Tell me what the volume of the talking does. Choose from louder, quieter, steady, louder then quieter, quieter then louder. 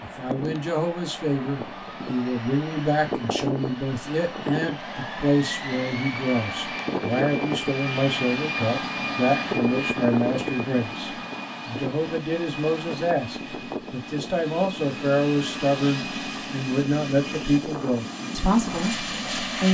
steady.